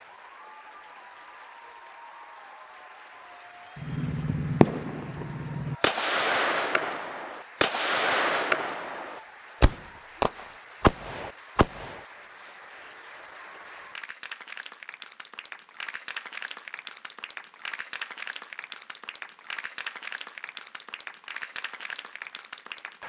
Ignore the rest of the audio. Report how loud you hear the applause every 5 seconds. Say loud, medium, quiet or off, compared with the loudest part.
medium, medium, medium, loud, loud.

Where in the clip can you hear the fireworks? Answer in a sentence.
You can hear the fireworks from 3.8 to 12.0 s.